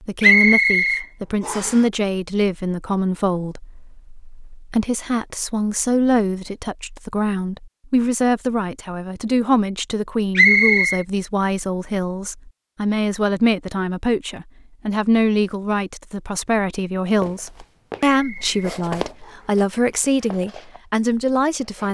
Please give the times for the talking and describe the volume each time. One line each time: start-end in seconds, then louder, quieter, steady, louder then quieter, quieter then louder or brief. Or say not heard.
0.0-21.9 steady.